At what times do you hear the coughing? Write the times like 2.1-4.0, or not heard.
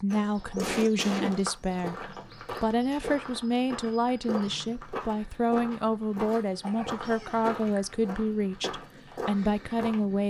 0.2-1.4, 6.6-7.8.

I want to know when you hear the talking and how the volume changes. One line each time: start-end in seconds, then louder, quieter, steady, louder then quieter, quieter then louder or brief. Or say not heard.
0.0-10.2 steady.